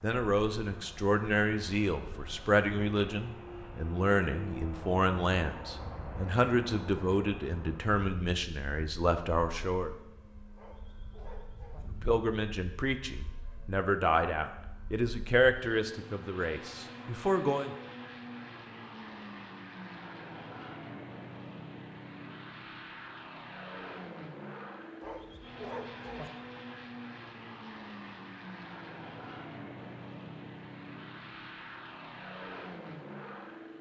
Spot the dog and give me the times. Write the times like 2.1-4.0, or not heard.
10.6-11.8, 25.0-26.3.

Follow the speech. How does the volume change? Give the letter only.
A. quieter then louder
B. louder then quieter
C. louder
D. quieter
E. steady
E.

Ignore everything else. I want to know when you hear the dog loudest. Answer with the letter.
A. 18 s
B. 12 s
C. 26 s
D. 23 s
C.